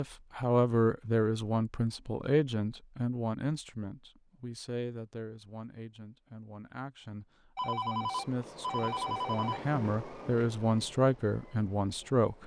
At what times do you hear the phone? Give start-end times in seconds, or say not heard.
7.5-9.6.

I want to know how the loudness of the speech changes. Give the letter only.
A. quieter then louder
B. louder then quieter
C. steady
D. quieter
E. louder
A.